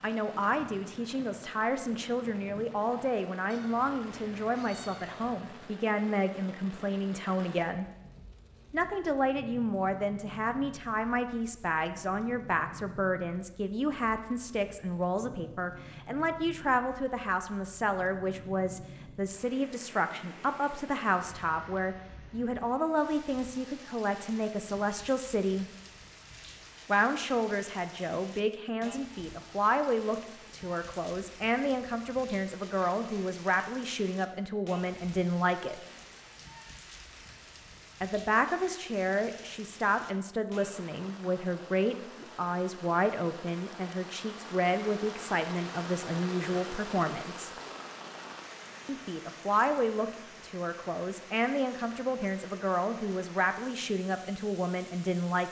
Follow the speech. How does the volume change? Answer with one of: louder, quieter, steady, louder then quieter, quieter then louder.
steady.